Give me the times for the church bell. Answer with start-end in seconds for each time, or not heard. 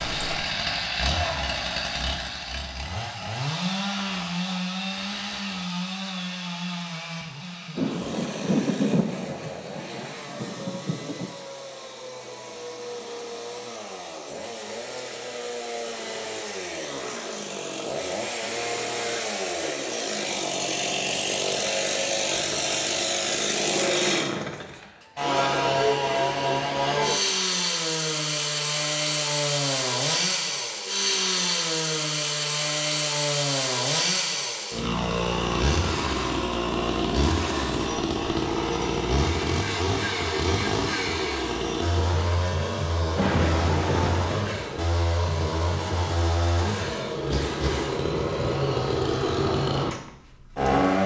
not heard.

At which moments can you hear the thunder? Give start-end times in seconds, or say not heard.
7.8-11.3, 43.1-44.5.